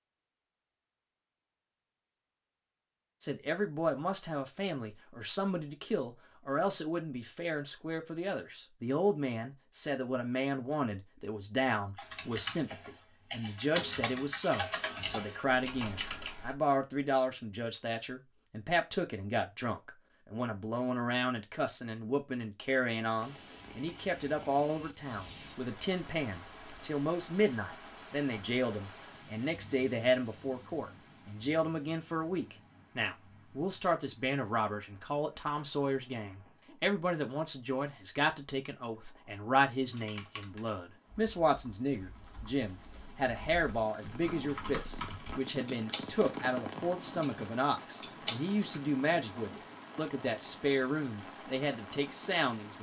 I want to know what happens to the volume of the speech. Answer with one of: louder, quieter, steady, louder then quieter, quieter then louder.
steady.